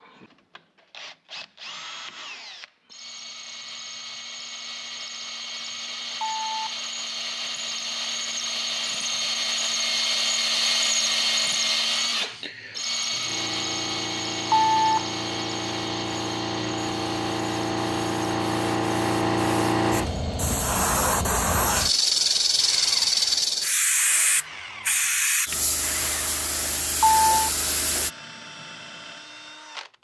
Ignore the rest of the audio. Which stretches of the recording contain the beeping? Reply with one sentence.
You can hear the beeping from 6.2 to 6.8 s, from 14.5 to 15.1 s and from 26.8 to 27.5 s.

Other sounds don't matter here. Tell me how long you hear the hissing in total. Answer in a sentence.
You can hear the hissing for 15 seconds altogether.